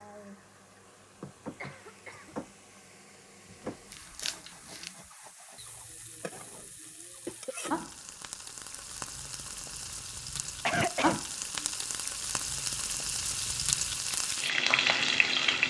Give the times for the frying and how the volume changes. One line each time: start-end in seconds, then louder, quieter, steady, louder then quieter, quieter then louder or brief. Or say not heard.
0.0-15.6 louder.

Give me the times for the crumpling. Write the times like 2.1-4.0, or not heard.
3.9-5.0.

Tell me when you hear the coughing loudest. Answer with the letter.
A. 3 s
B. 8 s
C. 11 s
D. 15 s
C.